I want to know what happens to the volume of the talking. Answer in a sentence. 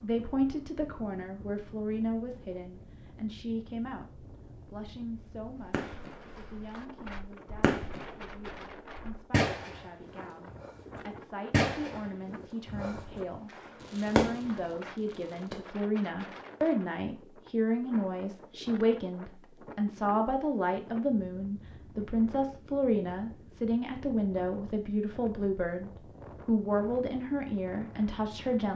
The volume of the talking goes down, then up.